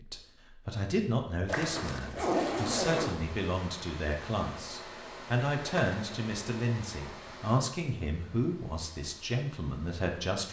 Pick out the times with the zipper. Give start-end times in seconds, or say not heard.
1.4-3.2, 5.5-6.0.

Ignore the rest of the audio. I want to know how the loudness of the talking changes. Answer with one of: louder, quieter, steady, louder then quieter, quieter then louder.
steady.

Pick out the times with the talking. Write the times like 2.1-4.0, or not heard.
0.0-10.4.